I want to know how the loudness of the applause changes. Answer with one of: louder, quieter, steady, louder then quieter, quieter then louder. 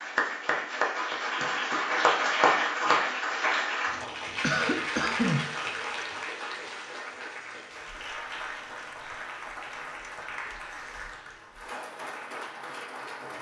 quieter.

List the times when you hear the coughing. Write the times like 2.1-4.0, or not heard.
4.0-6.0.